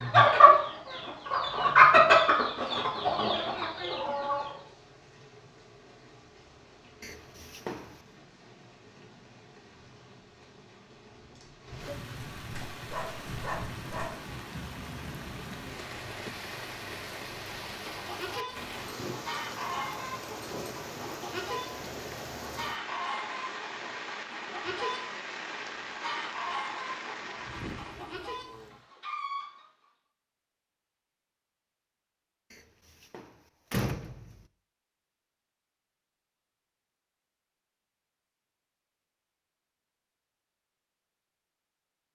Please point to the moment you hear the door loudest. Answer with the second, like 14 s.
34 s.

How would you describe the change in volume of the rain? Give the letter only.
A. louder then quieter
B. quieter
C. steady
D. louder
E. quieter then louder
D.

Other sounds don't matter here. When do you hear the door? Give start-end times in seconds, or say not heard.
7.0-8.0, 32.5-34.5.